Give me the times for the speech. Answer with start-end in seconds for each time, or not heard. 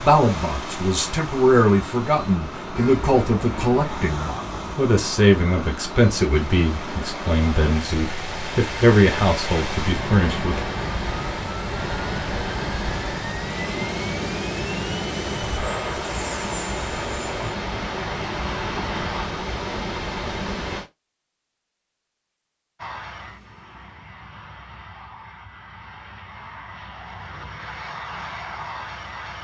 0.0-10.6.